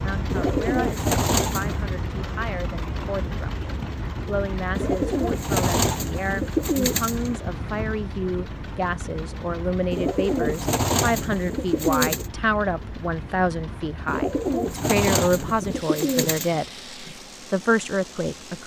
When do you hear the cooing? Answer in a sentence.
The cooing can be heard from 0.3 to 1.8 s, from 4.8 to 7.4 s, from 9.9 to 12.2 s and from 14.1 to 16.6 s.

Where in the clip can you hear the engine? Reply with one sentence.
The engine can be heard from 0.0 to 18.6 s.